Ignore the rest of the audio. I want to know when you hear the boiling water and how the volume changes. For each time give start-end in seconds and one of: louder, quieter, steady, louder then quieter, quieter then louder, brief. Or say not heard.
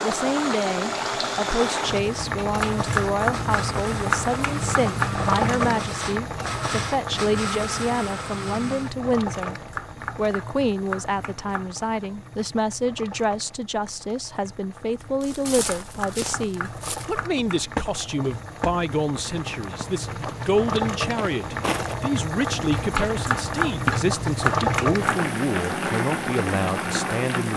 0.0-27.5 quieter then louder.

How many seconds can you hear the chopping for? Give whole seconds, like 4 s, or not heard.
10 s.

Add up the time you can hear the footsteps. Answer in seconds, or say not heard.
7 s.